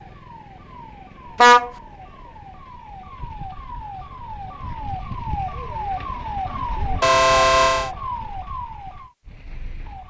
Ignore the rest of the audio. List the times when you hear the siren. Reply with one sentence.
The siren can be heard from 0.0 to 10.0 s.